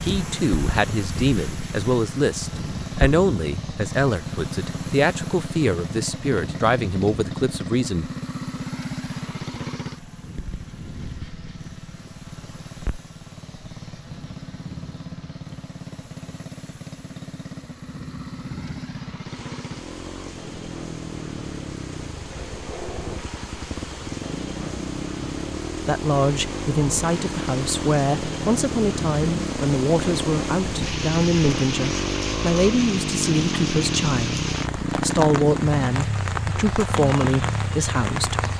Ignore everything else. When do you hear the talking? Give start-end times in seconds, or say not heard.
0.0-8.1, 25.9-38.5.